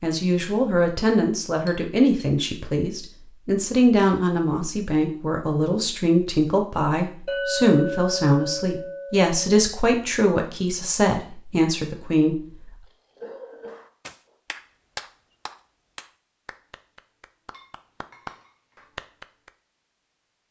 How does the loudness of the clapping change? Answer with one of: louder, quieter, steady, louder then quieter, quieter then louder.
quieter then louder.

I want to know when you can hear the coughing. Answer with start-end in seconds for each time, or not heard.
12.8-14.3.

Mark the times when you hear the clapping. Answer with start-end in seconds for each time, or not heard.
13.7-19.5.